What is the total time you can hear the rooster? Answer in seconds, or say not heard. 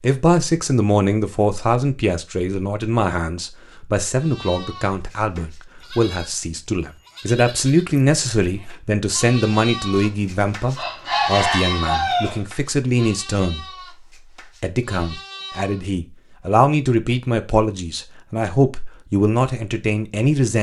2 s.